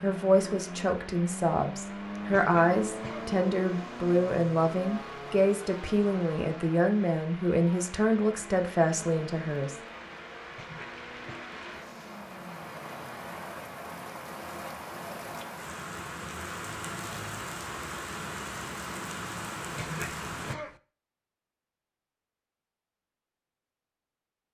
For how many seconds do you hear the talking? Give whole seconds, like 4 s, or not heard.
10 s.